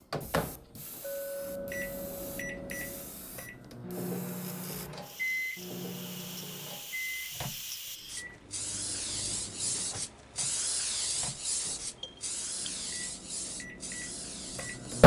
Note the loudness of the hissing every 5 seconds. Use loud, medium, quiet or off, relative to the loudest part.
quiet, loud, loud.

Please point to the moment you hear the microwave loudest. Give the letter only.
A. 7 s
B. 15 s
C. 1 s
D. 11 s
B.